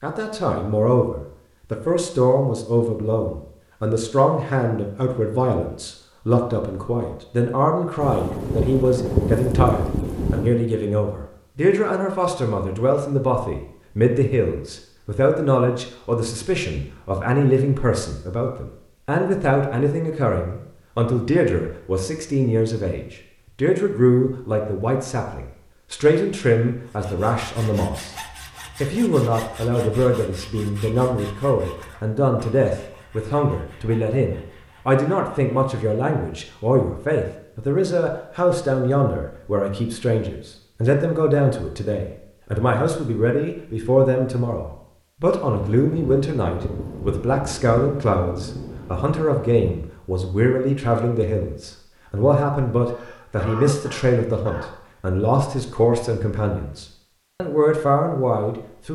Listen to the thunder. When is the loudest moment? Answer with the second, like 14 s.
9 s.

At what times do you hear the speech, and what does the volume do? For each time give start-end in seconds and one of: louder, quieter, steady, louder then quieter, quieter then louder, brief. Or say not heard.
0.0-28.1 steady
28.8-58.9 steady.